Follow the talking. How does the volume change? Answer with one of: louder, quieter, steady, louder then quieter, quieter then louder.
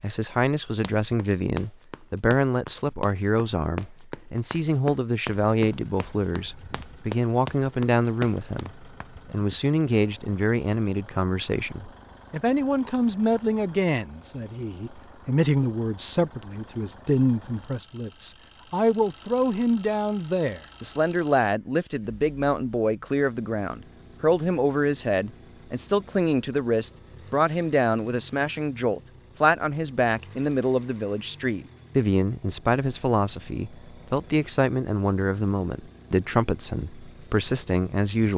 steady.